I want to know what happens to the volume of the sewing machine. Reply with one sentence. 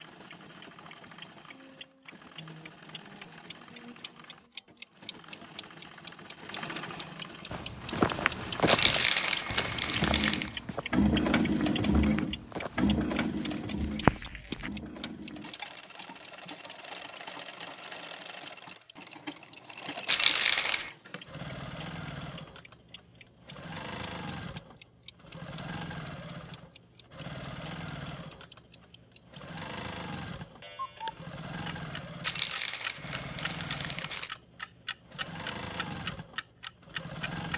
The volume of the sewing machine goes up, then down.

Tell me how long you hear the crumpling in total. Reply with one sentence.
The crumpling can be heard for 5 seconds in total.